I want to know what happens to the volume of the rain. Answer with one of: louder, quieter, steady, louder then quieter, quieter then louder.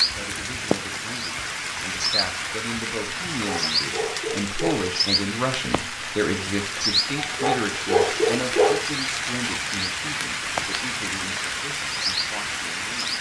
steady.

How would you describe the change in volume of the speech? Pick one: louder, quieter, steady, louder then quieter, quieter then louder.
louder then quieter.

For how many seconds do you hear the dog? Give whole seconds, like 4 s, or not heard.
3 s.